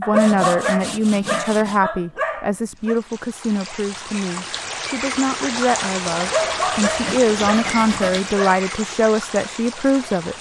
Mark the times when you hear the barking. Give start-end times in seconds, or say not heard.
0.0-3.0, 6.2-8.7.